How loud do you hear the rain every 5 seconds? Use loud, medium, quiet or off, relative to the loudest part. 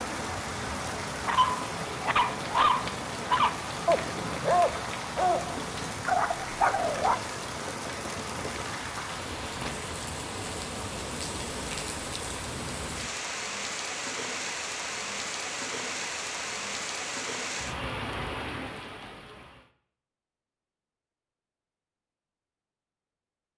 loud, loud, loud, loud, off.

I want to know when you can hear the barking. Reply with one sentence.
You can hear the barking from 1.2 to 7.2 s.